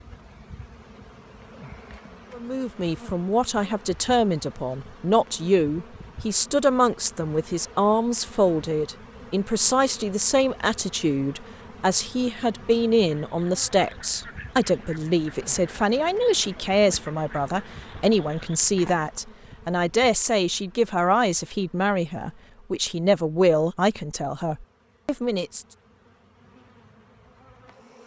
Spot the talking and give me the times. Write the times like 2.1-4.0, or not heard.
2.3-25.6.